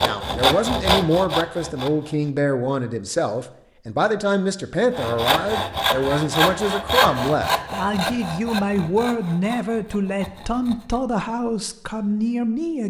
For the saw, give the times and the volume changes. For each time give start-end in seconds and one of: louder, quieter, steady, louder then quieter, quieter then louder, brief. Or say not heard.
0.0-2.3 brief
4.9-11.0 quieter.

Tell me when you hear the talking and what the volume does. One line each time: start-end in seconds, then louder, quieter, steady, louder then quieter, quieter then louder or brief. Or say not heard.
0.0-12.8 steady.